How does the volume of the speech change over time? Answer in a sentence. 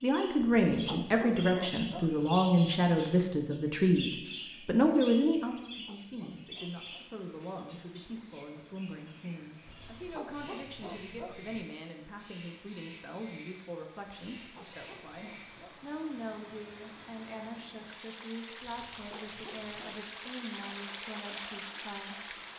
The volume of the speech goes down.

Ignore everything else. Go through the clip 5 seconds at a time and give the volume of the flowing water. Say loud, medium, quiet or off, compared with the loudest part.
off, quiet, quiet, medium, loud.